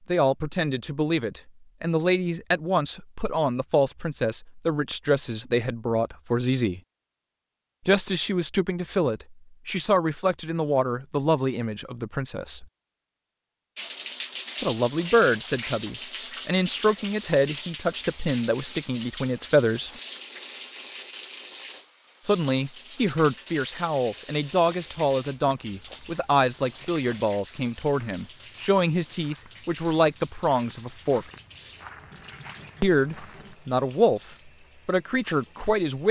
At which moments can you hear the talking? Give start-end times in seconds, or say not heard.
0.1-6.8, 7.8-12.7, 14.6-19.9, 22.2-31.2, 32.8-36.0.